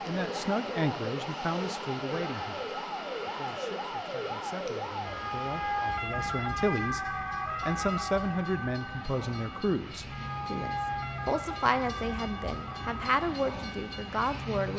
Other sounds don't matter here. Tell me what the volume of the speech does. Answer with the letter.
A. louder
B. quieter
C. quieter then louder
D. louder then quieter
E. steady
C.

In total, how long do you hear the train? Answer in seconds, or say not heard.
15 s.